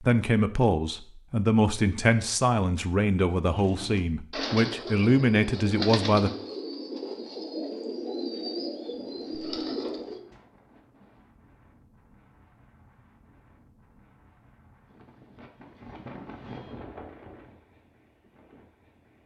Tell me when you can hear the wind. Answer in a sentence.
The wind can be heard from 8.9 to 19.2 s.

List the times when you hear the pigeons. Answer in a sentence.
The pigeons can be heard from 3.4 to 10.3 s.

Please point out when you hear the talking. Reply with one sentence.
The talking can be heard from 0.0 to 6.3 s.